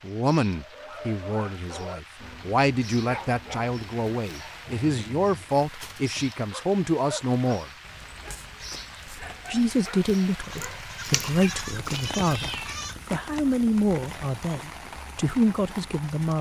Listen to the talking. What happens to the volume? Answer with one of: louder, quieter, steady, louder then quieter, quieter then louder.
steady.